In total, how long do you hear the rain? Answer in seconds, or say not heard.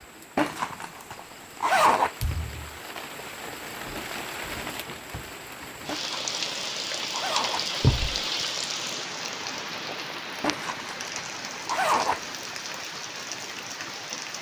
14 s.